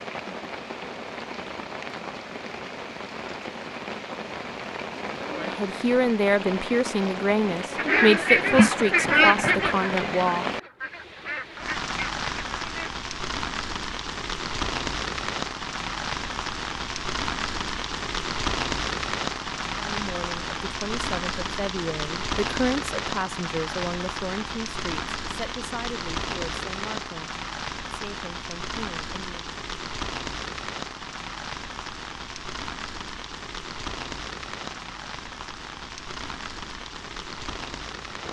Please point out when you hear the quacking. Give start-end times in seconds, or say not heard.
7.8-12.9.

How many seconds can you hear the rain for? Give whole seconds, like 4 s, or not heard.
38 s.